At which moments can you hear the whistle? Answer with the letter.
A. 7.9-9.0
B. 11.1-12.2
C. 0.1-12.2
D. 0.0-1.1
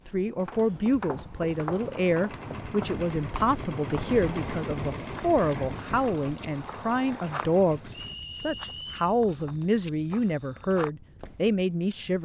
A.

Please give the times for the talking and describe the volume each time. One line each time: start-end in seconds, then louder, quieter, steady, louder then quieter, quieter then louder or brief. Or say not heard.
0.1-12.2 steady.